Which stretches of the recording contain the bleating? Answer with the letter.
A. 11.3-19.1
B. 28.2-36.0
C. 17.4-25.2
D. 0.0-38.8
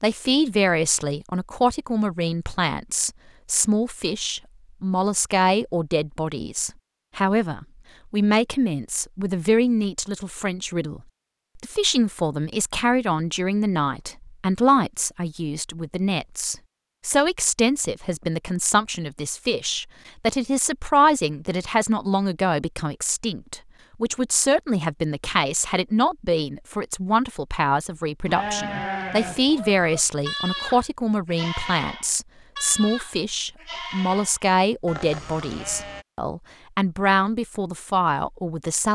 B.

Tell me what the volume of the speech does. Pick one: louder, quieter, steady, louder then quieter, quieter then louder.
steady.